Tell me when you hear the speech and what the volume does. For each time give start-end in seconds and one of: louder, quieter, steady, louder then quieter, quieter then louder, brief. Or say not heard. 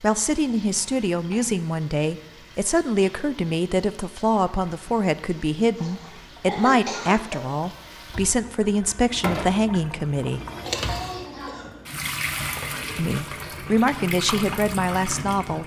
0.0-10.4 steady
12.9-15.6 brief.